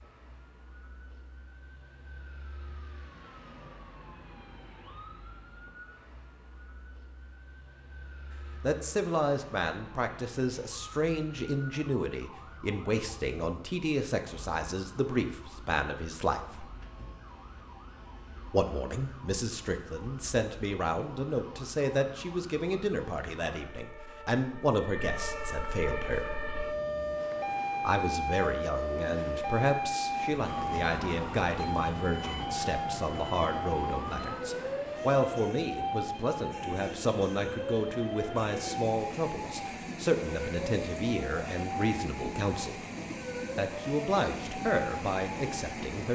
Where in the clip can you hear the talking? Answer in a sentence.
The talking can be heard from 8.6 to 16.6 s, from 18.5 to 26.3 s, from 27.9 to 42.8 s and from 43.5 to 46.1 s.